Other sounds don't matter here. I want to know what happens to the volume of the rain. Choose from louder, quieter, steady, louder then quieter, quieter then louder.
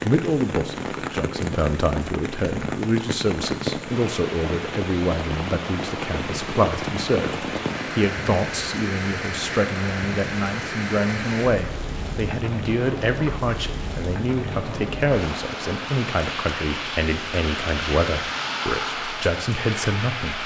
steady.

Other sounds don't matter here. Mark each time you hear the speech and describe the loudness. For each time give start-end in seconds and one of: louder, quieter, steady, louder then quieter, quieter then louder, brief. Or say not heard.
0.0-20.4 steady.